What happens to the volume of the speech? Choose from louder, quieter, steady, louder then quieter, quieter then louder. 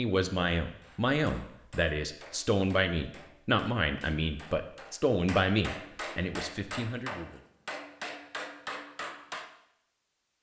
quieter.